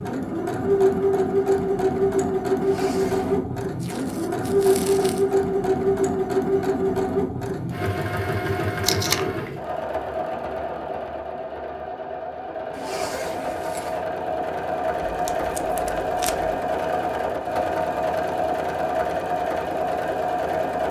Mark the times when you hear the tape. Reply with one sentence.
You can hear the tape from 3.8 to 5.3 s, from 8.8 to 9.2 s and from 15.1 to 16.5 s.